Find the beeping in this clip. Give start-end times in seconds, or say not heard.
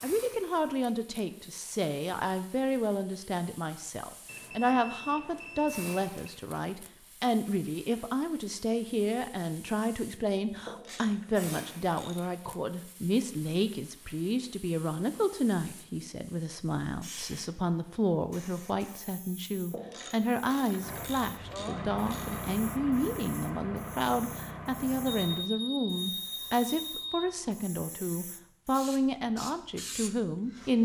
4.2-6.3, 10.8-11.7, 25.1-27.2.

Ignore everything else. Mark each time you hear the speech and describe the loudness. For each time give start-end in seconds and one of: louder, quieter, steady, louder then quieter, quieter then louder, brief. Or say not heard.
0.0-30.8 steady.